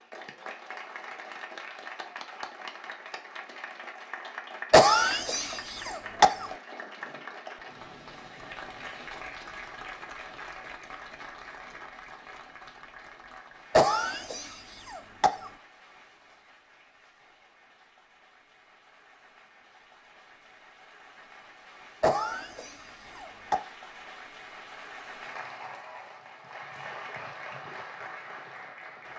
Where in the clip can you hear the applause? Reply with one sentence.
The applause can be heard from 0.0 to 29.1 s.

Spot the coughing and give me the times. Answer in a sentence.
The coughing can be heard from 4.7 to 6.5 s, from 13.7 to 15.5 s and from 22.0 to 23.6 s.